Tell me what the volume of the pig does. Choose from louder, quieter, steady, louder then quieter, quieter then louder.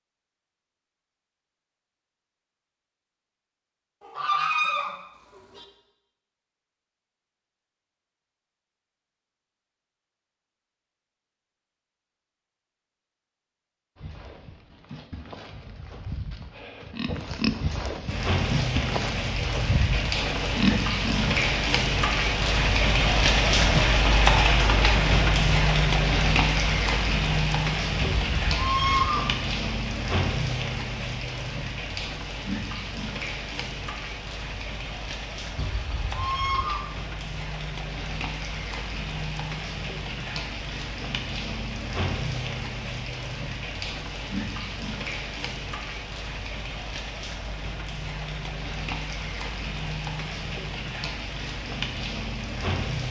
louder.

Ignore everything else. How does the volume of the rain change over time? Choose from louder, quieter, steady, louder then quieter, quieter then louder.
quieter.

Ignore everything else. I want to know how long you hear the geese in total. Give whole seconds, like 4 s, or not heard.
4 s.